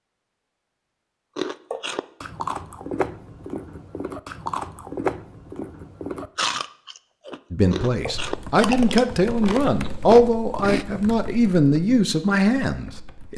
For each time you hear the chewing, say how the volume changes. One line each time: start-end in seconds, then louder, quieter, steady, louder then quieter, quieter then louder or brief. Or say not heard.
1.4-10.8 steady.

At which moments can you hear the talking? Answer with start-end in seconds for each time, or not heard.
7.5-13.3.